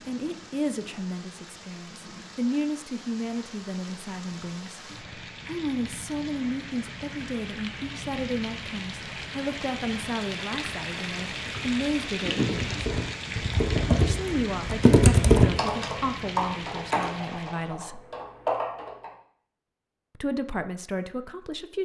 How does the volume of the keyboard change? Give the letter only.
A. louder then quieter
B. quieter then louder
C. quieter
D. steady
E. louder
A.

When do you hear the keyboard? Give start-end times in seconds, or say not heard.
11.4-19.1.